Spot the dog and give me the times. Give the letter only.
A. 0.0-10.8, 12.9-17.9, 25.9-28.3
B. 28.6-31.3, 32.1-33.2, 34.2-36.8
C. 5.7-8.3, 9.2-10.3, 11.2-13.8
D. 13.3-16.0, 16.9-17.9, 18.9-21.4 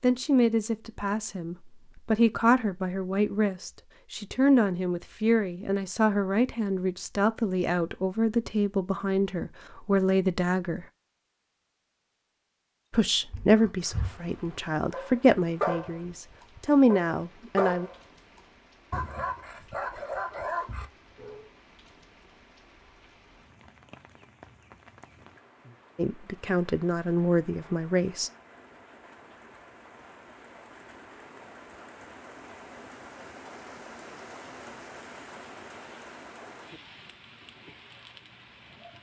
D.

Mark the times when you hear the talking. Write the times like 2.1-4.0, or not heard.
0.0-10.8, 12.9-17.9, 25.9-28.3.